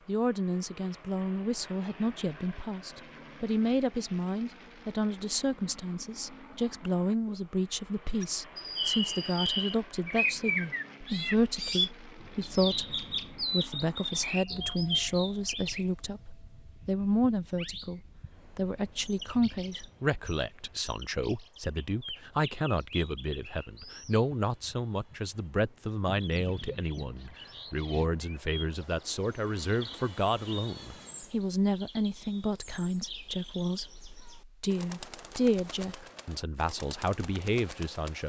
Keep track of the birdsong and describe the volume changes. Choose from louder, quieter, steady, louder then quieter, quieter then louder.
quieter.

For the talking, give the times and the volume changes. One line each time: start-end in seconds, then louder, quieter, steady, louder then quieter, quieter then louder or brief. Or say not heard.
0.1-38.2 steady.